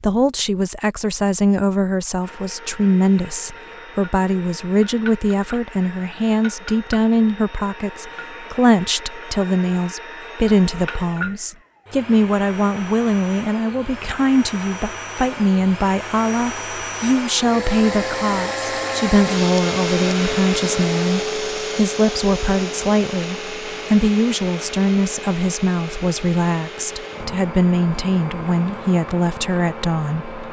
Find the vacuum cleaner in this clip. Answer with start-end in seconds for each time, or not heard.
2.2-30.4.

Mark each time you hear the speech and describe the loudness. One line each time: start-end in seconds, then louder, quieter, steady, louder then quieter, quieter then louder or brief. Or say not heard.
0.0-30.4 steady.